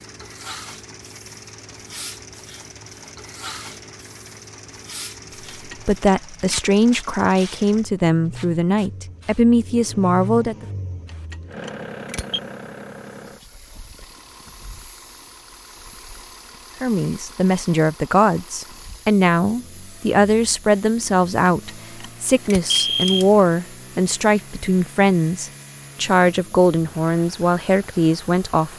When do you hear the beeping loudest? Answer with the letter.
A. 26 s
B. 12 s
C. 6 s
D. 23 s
D.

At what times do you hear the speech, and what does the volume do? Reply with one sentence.
The speech can be heard from 5.8 to 10.7 s, at a steady volume; and from 16.8 to 28.7 s, at a steady volume.